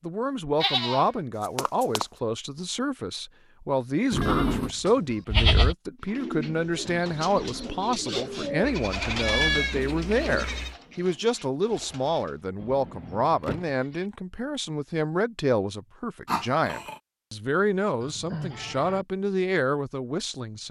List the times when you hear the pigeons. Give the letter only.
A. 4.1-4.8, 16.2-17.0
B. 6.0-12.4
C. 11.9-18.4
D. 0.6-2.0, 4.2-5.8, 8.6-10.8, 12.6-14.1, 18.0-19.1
B.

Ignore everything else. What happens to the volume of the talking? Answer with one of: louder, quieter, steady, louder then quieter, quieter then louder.
steady.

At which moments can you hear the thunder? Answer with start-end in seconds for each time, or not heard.
not heard.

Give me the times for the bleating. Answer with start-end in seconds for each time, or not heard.
0.6-2.0, 4.2-5.8, 8.6-10.8, 12.6-14.1, 18.0-19.1.